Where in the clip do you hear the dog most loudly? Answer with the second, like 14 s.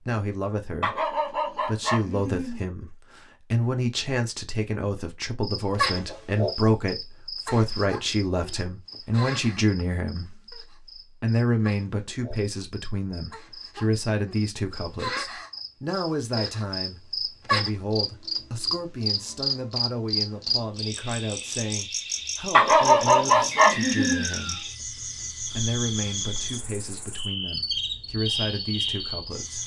23 s.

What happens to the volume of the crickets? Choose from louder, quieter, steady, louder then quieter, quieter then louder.
quieter then louder.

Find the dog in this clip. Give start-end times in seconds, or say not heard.
0.8-2.6, 22.5-24.2.